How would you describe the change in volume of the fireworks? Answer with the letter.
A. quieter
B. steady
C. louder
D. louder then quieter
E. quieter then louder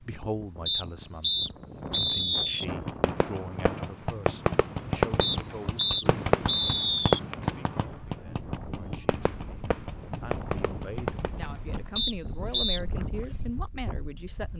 A.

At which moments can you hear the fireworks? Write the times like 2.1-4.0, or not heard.
2.6-13.7.